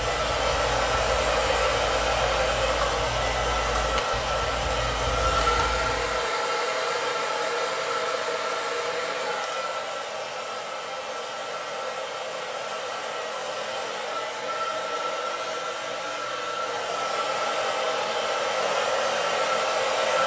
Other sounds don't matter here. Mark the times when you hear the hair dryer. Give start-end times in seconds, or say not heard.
0.0-20.2.